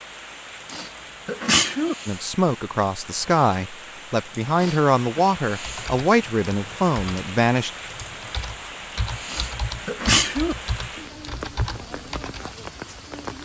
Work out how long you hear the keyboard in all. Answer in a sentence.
The keyboard can be heard for 7 seconds in total.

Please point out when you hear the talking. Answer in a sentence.
You can hear the talking from 2.0 to 7.7 s.